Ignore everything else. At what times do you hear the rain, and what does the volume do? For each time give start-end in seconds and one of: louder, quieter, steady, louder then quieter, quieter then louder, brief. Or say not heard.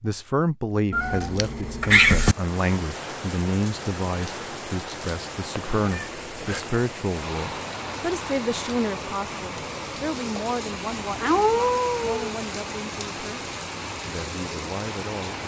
2.1-15.4 steady.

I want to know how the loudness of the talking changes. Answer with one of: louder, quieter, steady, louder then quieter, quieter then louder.
quieter.